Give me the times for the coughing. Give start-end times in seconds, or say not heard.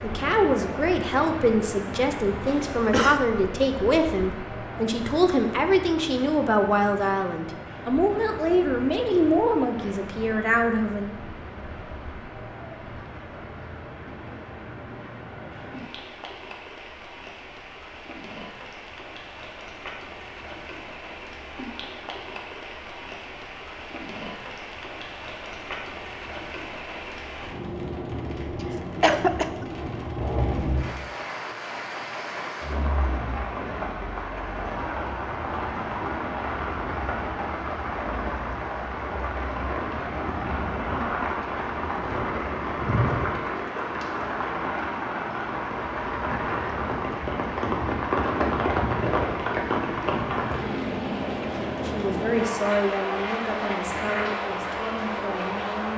2.5-3.2, 29.0-29.6.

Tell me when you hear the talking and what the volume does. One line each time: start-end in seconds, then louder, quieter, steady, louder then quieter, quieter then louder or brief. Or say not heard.
0.0-11.2 steady
51.8-55.9 quieter.